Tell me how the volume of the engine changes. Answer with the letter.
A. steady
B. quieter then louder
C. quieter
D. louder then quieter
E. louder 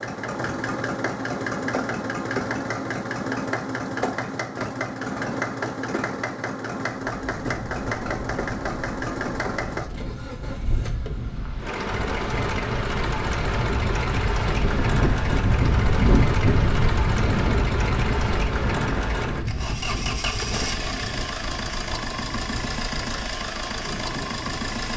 A.